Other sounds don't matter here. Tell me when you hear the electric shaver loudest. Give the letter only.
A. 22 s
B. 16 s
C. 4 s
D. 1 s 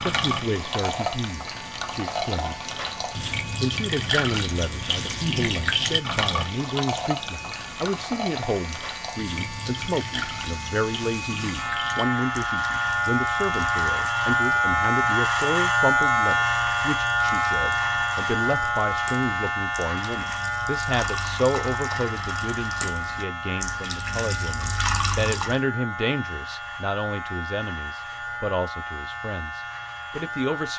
B.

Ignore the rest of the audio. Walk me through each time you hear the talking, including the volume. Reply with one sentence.
You can hear the talking briefly from 0.0 to 2.6 s; and from 3.6 to 30.7 s, at a steady volume.